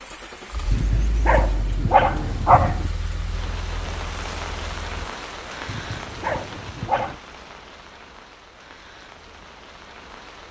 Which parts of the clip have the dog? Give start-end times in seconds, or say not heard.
0.7-2.9, 5.7-7.2.